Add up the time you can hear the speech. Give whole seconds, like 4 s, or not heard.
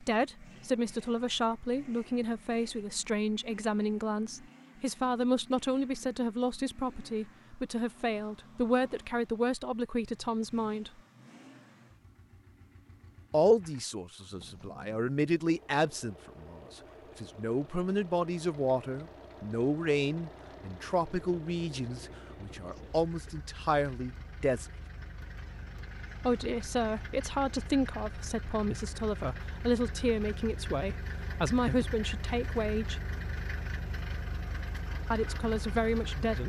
30 s.